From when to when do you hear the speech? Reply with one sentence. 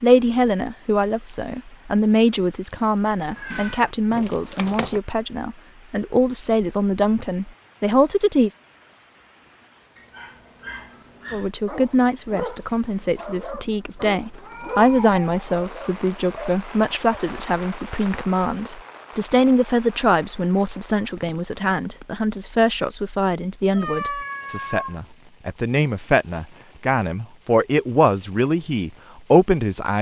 The speech can be heard from 0.0 to 8.5 s and from 11.3 to 29.9 s.